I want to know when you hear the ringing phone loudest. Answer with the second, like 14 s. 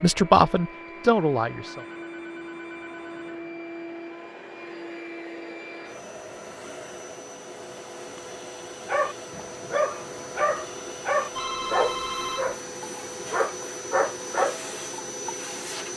12 s.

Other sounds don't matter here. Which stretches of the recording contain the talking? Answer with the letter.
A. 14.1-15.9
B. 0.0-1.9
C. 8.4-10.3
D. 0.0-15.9
B.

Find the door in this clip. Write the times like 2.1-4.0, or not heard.
not heard.